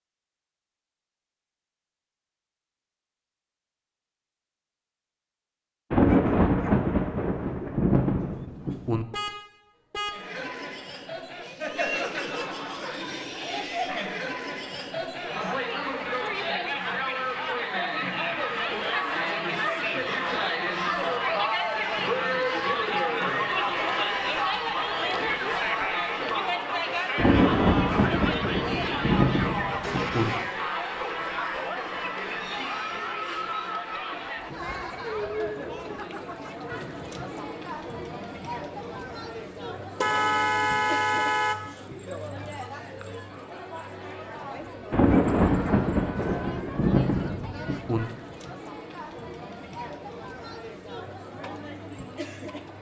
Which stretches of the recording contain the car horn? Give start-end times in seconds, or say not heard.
8.2-10.3, 29.8-30.6, 40.0-41.7.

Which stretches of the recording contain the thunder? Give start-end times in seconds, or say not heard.
5.9-9.1, 27.1-30.3, 44.9-48.0.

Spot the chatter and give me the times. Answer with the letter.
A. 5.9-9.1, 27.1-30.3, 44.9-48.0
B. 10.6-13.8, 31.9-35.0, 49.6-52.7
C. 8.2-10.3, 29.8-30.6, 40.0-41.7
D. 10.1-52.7
D.